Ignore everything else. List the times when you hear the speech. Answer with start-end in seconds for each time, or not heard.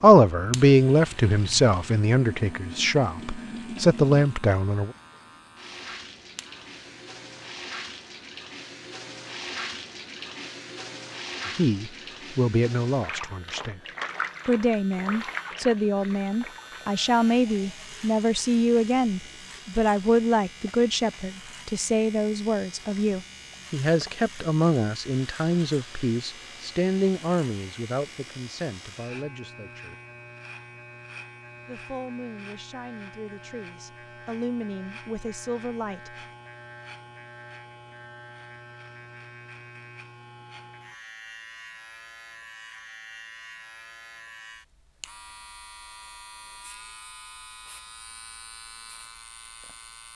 0.0-4.9, 11.4-13.8, 14.4-29.9, 31.6-36.1.